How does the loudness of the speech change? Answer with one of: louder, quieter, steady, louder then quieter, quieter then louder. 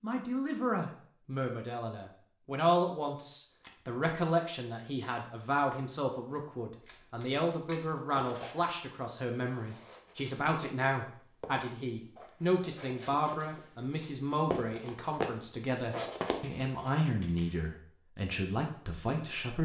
steady.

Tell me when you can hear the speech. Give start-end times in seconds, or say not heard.
0.0-19.6.